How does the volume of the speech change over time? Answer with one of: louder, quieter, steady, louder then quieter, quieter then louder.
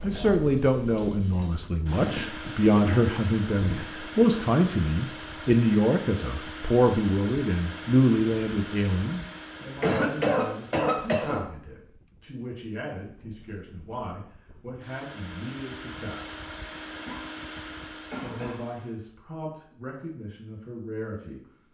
quieter.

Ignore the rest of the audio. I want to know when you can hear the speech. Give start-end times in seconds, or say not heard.
0.0-16.4, 18.1-21.6.